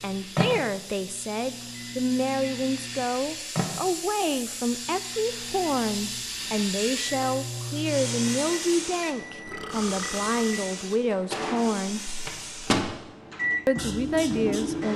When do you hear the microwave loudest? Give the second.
13 s.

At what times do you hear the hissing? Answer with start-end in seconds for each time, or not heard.
0.0-14.9.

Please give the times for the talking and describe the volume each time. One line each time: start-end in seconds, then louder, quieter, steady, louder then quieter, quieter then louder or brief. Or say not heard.
0.0-12.1 steady
13.7-14.9 brief.